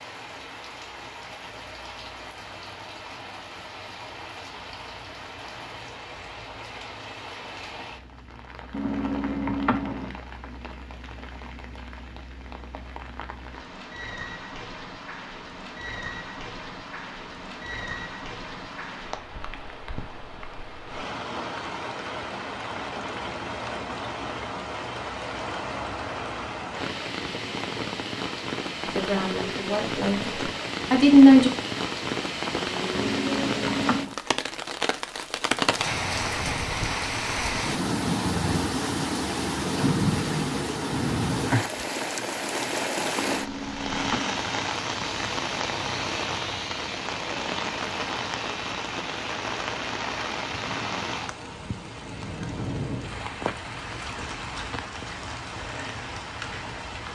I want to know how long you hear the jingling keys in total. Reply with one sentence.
You can hear the jingling keys for 4 seconds altogether.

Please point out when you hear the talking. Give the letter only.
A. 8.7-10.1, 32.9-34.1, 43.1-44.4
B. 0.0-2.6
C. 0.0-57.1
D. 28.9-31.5
D.